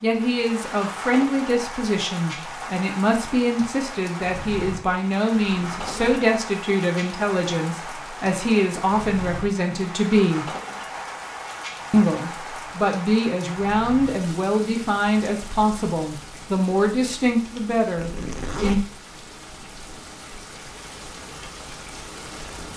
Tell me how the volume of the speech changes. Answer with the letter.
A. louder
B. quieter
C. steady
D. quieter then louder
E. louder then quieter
C.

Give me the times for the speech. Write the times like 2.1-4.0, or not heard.
0.0-10.6, 11.9-18.8.